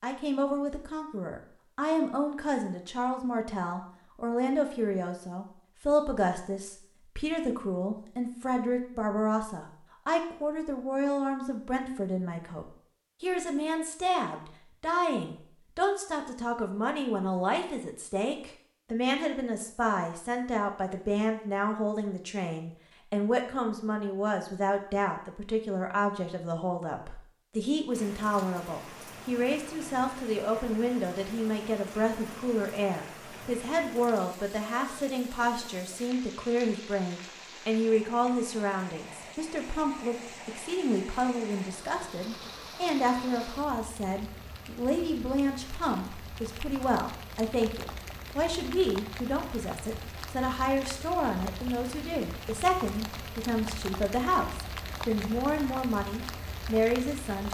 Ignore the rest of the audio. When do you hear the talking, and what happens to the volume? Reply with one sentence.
The talking can be heard from 0.0 to 57.4 s, at a steady volume.